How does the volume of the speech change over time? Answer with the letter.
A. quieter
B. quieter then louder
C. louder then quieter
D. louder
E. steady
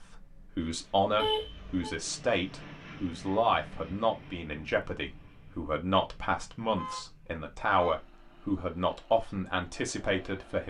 E.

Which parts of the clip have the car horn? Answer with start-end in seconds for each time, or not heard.
1.1-1.7, 6.8-8.0.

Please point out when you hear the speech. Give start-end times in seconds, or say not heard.
0.0-10.6.